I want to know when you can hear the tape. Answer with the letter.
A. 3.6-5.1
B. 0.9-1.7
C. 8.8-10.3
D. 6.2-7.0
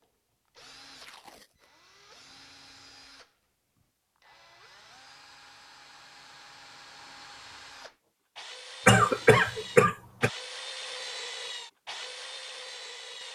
B.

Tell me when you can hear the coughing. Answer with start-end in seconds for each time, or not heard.
8.8-10.3.